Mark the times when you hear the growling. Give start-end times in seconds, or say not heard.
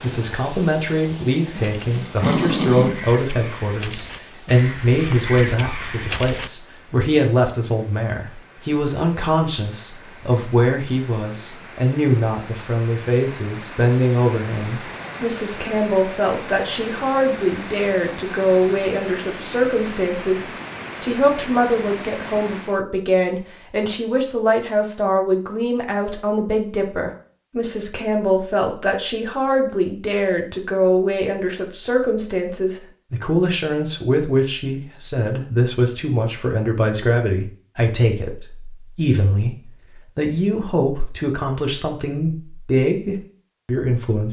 1.6-3.0.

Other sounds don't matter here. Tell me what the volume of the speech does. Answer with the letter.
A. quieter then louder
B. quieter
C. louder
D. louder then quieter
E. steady
E.